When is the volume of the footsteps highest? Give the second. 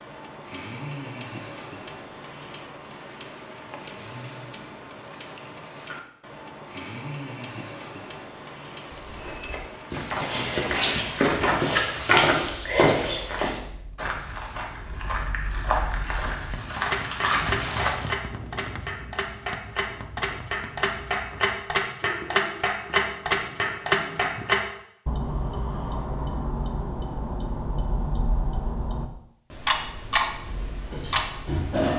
12 s.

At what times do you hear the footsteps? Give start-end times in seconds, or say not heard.
8.8-18.1.